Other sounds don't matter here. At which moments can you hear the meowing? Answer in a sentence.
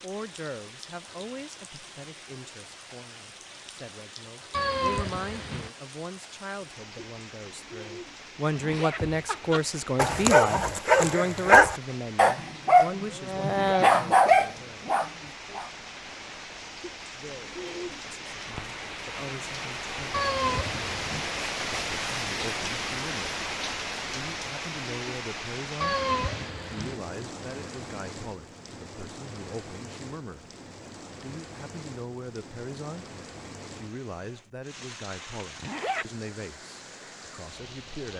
The meowing can be heard from 4.5 to 5.7 s, from 20.1 to 21.3 s and from 25.8 to 26.9 s.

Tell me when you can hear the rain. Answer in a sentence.
You can hear the rain from 0.0 to 38.1 s.